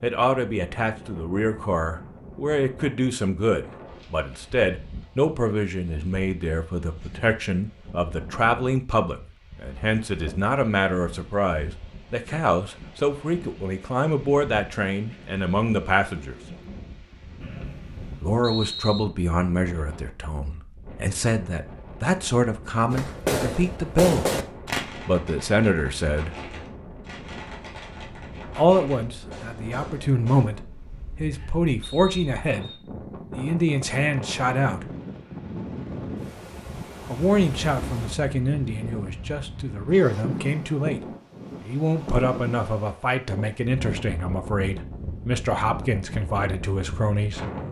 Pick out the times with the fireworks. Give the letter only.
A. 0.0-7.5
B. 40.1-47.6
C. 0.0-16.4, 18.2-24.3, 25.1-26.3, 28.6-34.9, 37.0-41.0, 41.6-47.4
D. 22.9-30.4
D.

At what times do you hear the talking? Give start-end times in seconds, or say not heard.
0.0-16.4, 18.2-24.3, 25.1-26.3, 28.6-34.9, 37.0-41.0, 41.6-47.4.